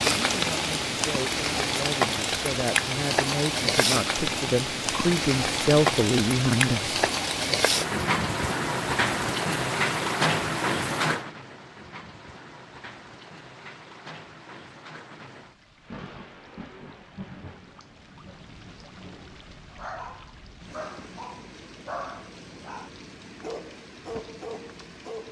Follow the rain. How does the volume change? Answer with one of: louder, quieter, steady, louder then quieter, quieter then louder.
quieter.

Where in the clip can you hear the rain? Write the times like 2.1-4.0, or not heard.
0.0-25.2.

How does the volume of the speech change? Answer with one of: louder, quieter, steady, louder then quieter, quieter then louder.
louder.